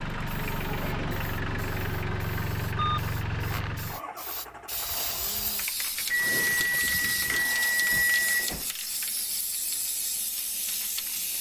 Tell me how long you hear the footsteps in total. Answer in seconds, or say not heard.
not heard.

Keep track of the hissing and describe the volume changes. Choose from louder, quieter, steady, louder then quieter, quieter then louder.
louder.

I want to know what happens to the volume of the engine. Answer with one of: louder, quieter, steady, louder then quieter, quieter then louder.
quieter.